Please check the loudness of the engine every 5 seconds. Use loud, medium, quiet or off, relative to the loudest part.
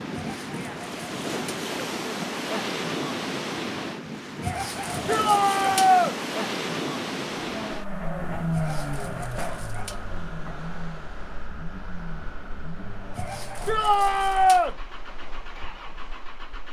off, loud, medium, quiet.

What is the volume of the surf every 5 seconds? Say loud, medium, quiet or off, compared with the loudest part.
loud, loud, quiet, quiet.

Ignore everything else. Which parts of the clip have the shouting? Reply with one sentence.
You can hear the shouting from 5.0 to 6.2 s and from 13.7 to 14.8 s.